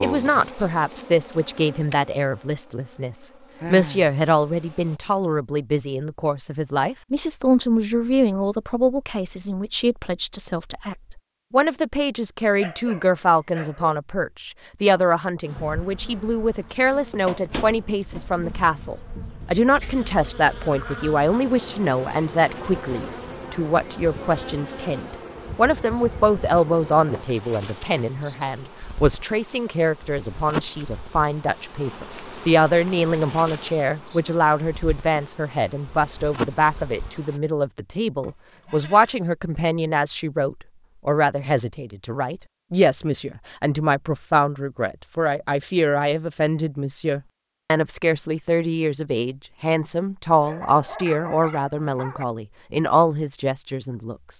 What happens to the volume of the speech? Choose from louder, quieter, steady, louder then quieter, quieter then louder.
steady.